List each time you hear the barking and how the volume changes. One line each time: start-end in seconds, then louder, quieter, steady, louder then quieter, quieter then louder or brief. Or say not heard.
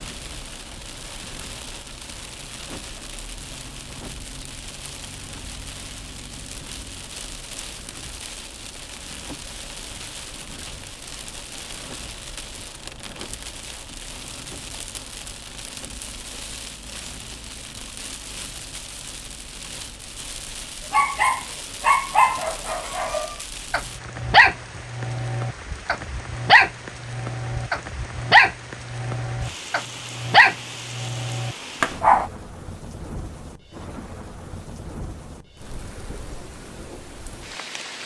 20.9-32.3 steady.